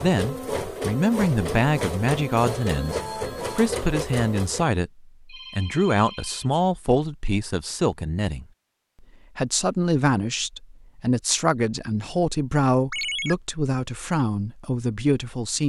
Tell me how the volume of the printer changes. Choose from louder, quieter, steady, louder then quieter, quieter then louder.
steady.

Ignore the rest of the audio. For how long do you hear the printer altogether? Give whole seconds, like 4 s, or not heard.
5 s.